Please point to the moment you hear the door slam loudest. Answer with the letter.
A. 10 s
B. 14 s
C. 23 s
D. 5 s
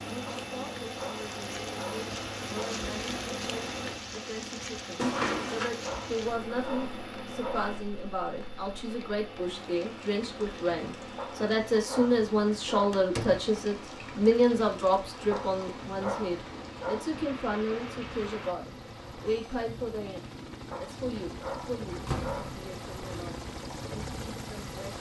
D.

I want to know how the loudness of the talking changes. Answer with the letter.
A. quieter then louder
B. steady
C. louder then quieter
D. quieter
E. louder
C.